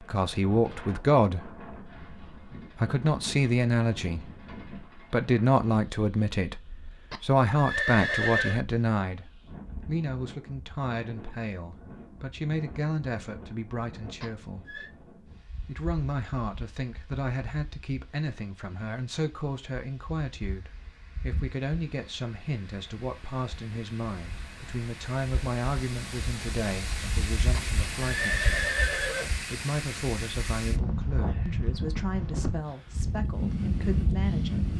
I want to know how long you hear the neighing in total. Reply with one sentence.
You can hear the neighing for 4 seconds altogether.